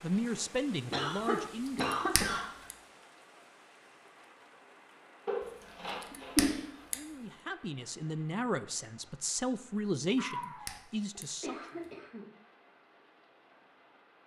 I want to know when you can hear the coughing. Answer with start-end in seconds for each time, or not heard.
0.9-2.5, 5.2-6.7, 10.2-12.2.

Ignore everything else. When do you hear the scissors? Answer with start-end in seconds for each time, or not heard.
1.6-2.8, 5.8-7.0, 10.4-11.9.